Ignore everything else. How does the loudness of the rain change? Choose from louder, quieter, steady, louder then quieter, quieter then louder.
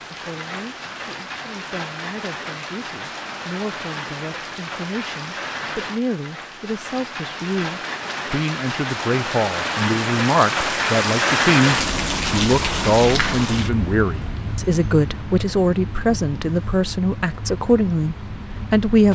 louder then quieter.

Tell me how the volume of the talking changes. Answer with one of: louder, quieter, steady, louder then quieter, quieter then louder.
louder.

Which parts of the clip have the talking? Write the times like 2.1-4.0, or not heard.
0.1-19.1.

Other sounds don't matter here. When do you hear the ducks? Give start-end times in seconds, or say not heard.
not heard.